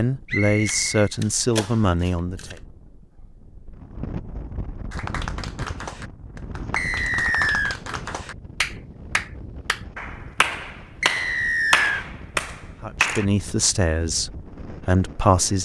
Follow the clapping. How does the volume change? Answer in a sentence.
The loudness of the clapping goes up.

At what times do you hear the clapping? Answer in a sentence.
You can hear the clapping from 4.9 to 13.2 s.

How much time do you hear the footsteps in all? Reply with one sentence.
The footsteps can't be heard in this clip.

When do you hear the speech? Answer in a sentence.
You can hear the speech from 0.0 to 2.5 s and from 12.8 to 15.6 s.